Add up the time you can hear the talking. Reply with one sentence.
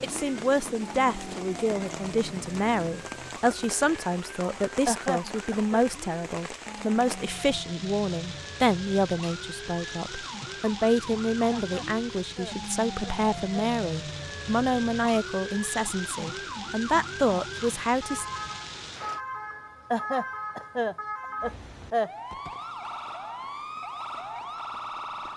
The talking can be heard for 18 seconds in total.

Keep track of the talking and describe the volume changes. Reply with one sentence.
The loudness of the talking stays about the same.